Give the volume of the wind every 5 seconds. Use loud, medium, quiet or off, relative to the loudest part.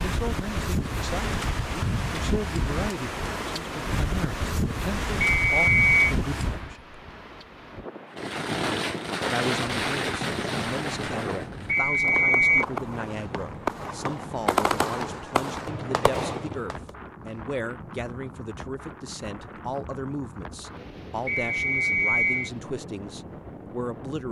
loud, loud, medium, medium, medium.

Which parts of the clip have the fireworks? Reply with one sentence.
You can hear the fireworks from 8.2 to 16.9 s.